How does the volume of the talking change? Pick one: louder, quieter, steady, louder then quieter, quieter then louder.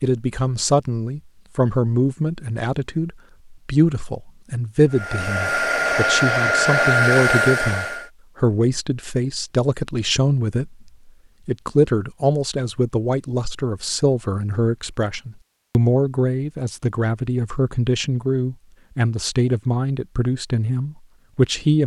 steady.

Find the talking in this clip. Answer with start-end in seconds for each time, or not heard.
0.0-21.8.